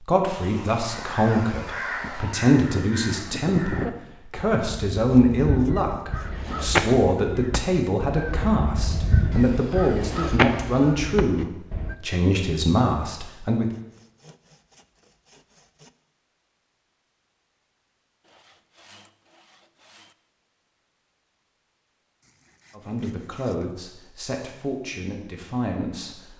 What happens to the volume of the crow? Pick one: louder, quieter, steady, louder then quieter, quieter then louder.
louder.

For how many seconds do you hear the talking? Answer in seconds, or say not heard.
17 s.